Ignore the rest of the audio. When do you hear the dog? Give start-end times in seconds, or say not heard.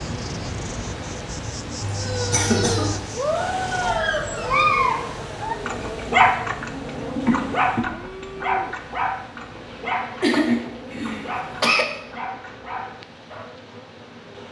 2.0-13.5.